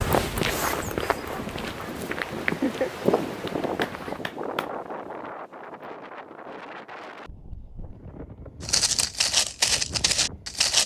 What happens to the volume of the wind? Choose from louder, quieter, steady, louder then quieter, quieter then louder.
quieter.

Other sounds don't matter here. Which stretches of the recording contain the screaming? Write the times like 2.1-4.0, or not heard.
not heard.